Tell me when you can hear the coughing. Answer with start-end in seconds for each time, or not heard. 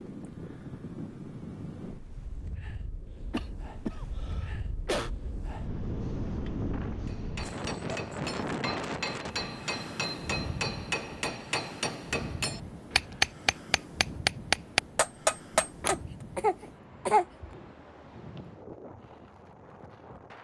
3.3-5.1, 15.8-17.4.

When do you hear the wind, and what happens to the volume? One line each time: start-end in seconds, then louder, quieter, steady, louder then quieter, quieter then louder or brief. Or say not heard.
0.0-20.3 louder then quieter.